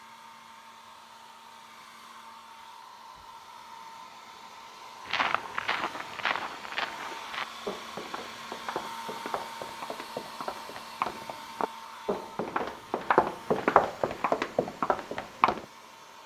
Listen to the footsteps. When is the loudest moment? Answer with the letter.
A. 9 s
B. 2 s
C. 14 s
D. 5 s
C.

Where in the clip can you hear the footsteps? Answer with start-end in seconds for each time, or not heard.
5.0-15.7.